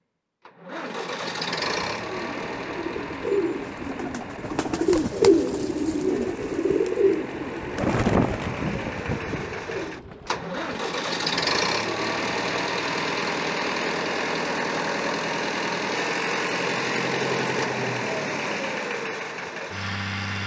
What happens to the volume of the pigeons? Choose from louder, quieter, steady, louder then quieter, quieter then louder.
louder then quieter.